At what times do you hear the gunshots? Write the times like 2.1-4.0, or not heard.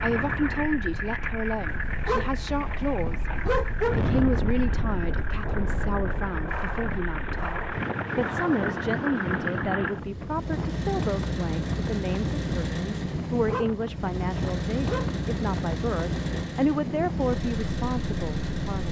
4.9-8.9.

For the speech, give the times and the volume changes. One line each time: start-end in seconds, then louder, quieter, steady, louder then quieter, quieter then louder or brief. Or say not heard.
0.0-18.8 steady.